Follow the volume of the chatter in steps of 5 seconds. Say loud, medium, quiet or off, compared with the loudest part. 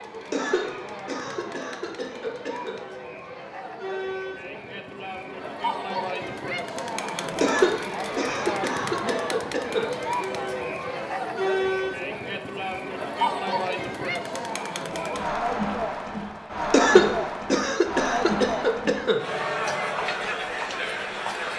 medium, loud, loud, loud, loud.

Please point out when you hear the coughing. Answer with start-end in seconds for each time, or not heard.
0.3-2.8, 7.4-9.9, 16.7-19.2.